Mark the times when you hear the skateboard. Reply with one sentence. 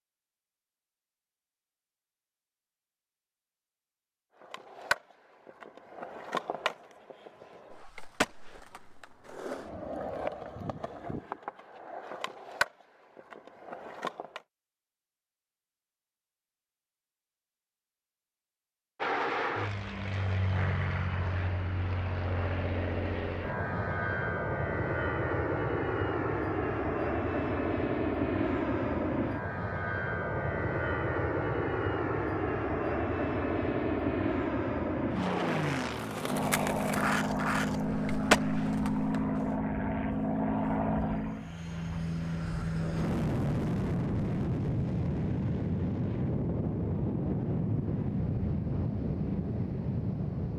You can hear the skateboard from 4.4 to 14.4 s and from 36.0 to 39.5 s.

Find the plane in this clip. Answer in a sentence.
You can hear the plane from 18.9 to 50.5 s.